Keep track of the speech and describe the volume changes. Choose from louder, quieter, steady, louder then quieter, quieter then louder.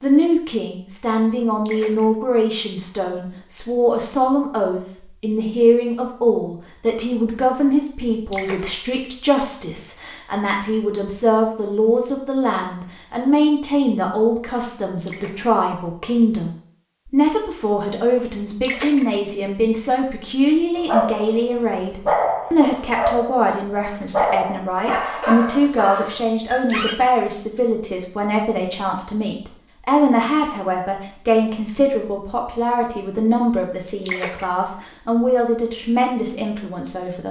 steady.